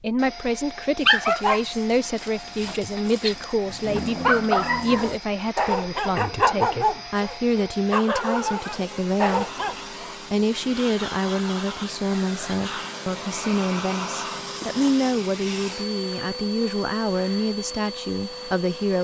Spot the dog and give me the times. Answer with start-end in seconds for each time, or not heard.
1.0-9.8.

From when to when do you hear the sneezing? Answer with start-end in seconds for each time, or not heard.
not heard.